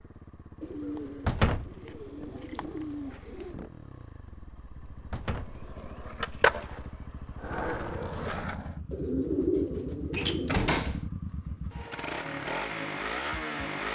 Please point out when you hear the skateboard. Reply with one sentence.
You can hear the skateboard from 5.6 to 8.8 s.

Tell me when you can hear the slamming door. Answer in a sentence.
You can hear the slamming door from 1.2 to 1.8 s, from 5.1 to 5.6 s and from 10.1 to 11.1 s.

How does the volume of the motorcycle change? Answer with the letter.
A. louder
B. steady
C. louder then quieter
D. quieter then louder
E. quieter
A.